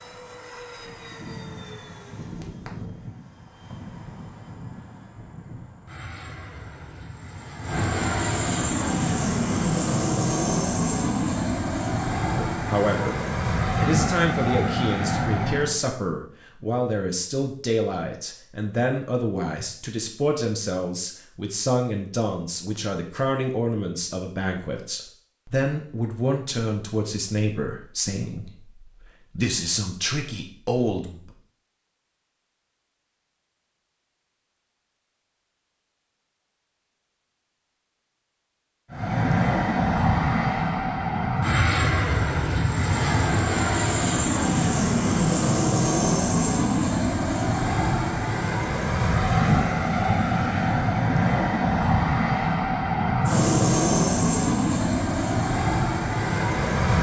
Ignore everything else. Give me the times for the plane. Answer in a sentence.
You can hear the plane from 0.0 to 15.8 s and from 38.9 to 56.9 s.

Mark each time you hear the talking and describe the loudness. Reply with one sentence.
You can hear the talking from 12.5 to 31.3 s, at a steady volume.